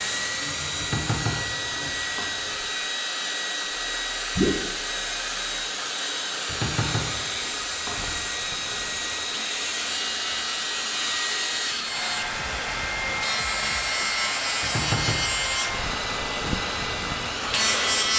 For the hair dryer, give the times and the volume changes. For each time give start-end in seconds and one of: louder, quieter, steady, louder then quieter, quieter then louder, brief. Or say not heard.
0.0-18.1 steady.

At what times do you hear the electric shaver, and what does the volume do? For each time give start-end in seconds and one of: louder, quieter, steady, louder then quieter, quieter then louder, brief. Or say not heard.
0.0-18.1 louder.